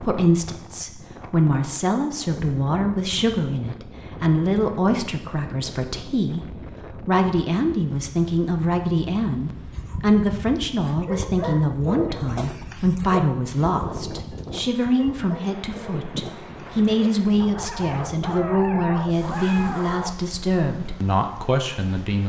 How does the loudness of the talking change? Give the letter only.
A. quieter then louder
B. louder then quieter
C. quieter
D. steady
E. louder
D.